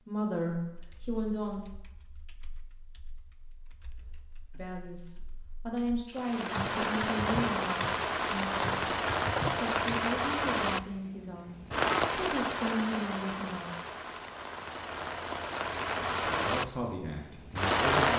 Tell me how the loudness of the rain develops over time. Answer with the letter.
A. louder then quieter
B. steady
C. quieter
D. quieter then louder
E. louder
D.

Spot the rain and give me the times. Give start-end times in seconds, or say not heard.
6.2-18.1.